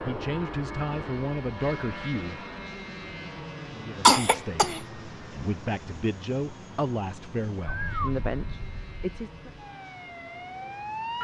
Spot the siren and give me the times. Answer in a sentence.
You can hear the siren from 7.7 to 11.1 s.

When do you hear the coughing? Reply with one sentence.
You can hear the coughing from 4.0 to 4.8 s.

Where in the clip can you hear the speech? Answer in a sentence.
The speech can be heard from 0.0 to 2.5 s and from 3.7 to 9.5 s.